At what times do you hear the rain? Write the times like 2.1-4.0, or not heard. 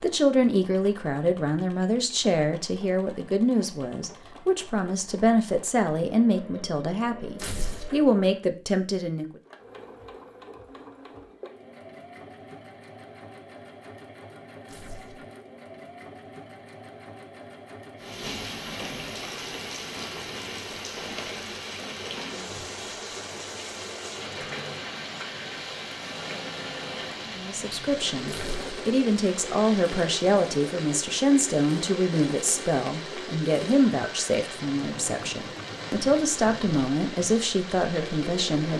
17.9-38.7.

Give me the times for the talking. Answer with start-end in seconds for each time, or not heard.
0.0-9.2, 27.4-38.7.